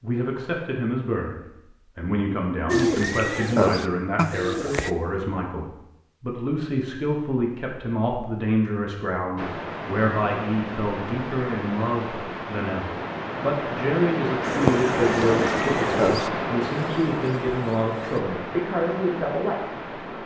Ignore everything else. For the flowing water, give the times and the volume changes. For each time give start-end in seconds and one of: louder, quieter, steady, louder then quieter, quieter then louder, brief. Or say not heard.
9.3-20.2 louder then quieter.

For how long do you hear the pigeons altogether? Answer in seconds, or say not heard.
6 s.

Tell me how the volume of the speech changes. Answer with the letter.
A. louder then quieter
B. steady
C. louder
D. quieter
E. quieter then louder
B.